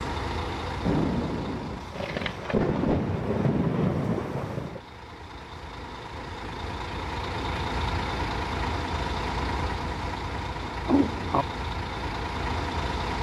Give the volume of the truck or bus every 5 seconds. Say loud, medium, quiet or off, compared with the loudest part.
medium, loud, loud.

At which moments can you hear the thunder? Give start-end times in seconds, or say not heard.
0.8-4.8.